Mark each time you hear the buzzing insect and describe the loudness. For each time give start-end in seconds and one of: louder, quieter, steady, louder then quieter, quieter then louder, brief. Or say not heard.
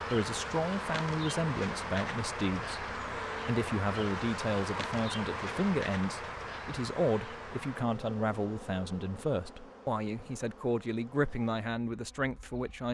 0.0-12.9 quieter.